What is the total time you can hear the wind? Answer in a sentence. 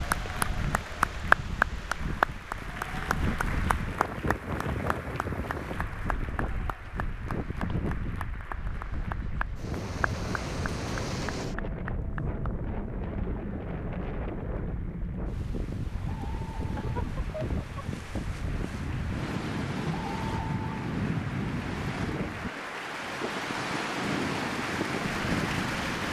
The wind can be heard for 26 seconds in total.